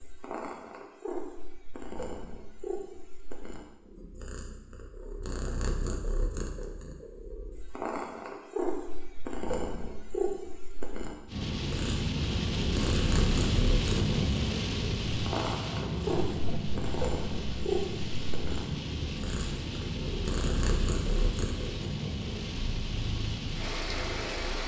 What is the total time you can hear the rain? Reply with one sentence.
The rain can be heard for 13 seconds in total.